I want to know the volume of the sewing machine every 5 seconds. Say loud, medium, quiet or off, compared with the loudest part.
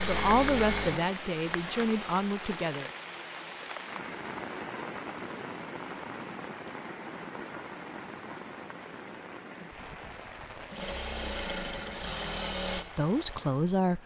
loud, off, loud.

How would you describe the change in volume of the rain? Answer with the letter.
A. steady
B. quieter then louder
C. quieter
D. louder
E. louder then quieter
C.